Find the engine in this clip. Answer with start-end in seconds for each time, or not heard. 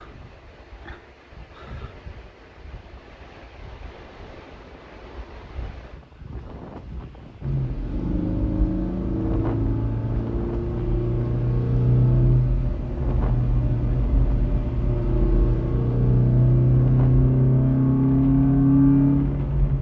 7.4-19.7.